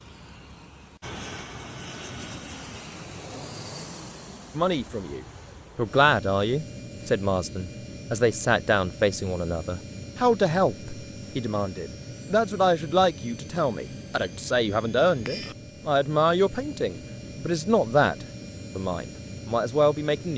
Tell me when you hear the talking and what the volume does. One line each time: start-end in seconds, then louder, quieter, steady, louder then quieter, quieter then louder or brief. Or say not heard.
4.5-20.3 steady.